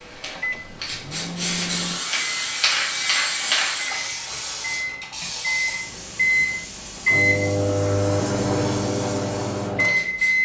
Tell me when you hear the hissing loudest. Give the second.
3 s.